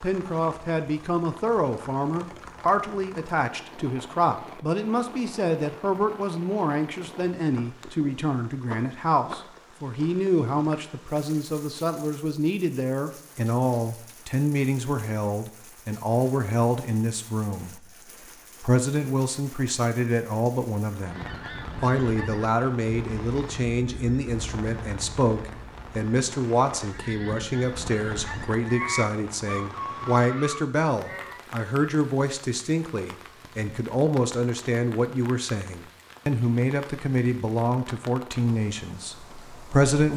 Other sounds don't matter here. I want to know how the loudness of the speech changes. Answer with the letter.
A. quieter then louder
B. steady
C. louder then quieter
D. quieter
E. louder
B.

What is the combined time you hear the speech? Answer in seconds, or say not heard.
40 s.